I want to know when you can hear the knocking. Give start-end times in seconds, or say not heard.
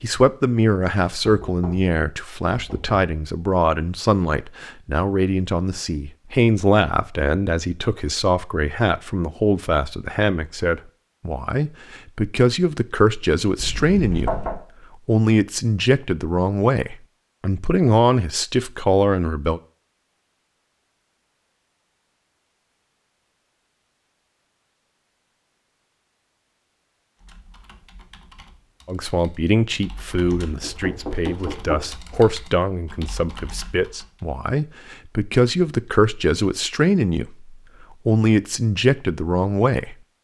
1.2-3.0, 13.6-14.6, 30.6-31.9.